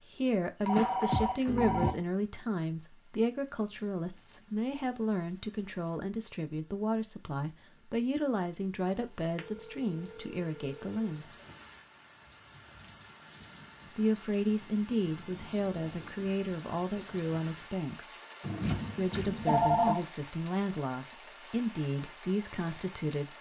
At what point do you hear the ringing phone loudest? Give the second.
20 s.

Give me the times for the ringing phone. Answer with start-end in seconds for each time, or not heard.
0.7-1.9, 9.3-11.0, 18.4-20.0.